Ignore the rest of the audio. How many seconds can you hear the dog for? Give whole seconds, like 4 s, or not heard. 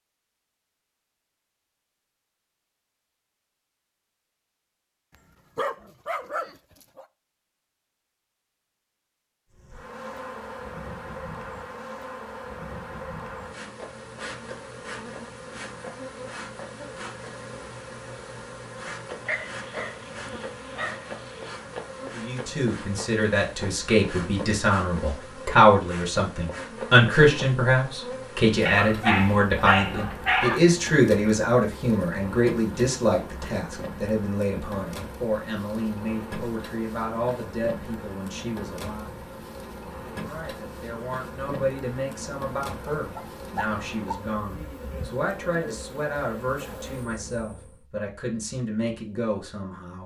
7 s.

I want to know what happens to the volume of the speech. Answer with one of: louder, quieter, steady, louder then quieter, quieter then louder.
quieter.